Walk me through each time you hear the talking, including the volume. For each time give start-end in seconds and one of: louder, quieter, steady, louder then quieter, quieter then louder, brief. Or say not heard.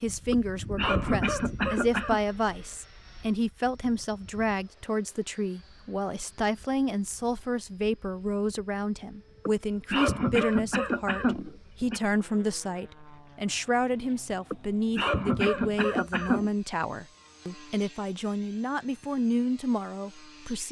0.0-20.6 steady.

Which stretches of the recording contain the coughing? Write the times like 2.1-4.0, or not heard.
0.3-2.2, 9.4-12.0, 14.5-16.5.